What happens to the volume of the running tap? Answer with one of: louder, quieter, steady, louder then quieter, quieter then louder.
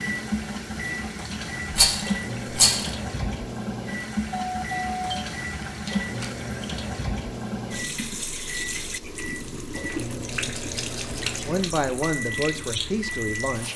steady.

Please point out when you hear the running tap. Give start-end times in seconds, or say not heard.
0.0-13.7.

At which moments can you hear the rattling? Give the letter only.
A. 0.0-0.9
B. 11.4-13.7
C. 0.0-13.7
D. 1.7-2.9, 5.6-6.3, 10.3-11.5
D.